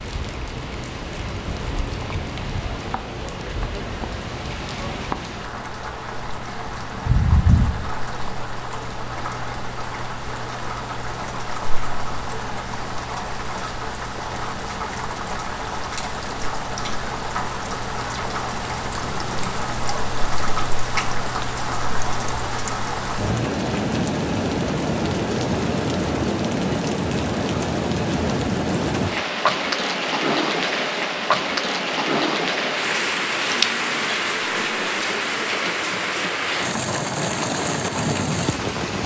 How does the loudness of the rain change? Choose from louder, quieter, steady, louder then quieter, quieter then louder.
louder.